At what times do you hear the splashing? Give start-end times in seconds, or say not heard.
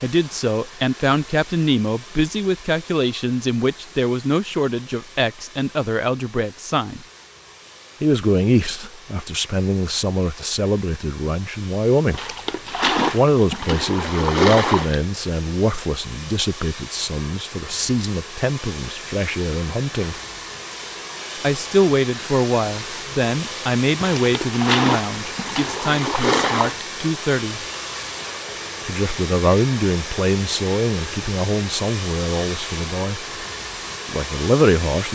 12.1-14.9, 24.0-26.9.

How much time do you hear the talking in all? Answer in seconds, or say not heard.
30 s.